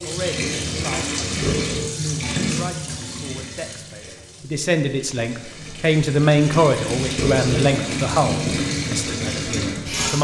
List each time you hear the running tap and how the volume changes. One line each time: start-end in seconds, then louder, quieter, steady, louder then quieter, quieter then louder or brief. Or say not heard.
0.0-10.1 quieter then louder.